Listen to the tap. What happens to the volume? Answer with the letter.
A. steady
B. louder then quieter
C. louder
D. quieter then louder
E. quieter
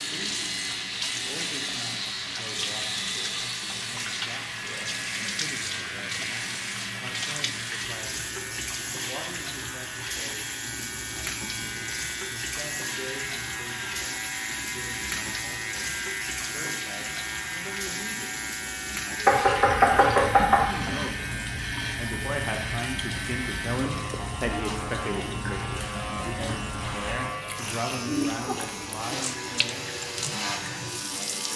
A.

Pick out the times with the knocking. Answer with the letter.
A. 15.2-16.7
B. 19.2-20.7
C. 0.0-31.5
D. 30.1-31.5
B.